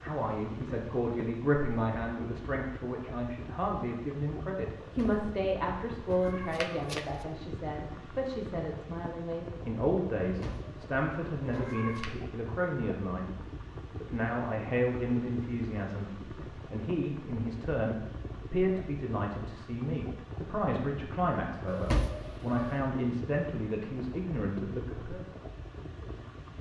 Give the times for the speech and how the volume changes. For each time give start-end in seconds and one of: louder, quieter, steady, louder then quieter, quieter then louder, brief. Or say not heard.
0.0-13.3 steady
14.0-25.2 steady.